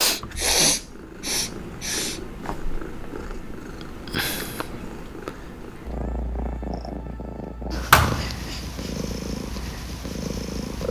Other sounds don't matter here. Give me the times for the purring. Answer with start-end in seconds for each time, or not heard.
0.0-10.8.